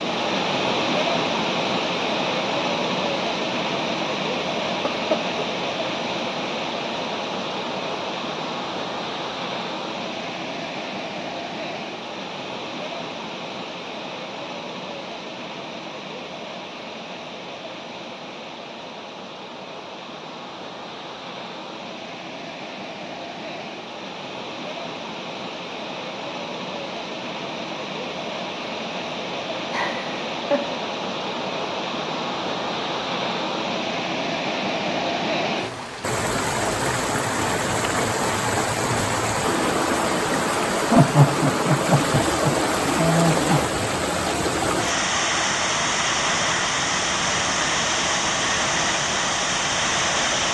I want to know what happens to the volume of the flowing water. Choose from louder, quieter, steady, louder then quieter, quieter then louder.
quieter then louder.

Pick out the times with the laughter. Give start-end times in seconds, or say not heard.
4.7-5.2, 29.7-30.8, 40.9-43.6.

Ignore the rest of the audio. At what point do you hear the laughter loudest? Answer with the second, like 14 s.
41 s.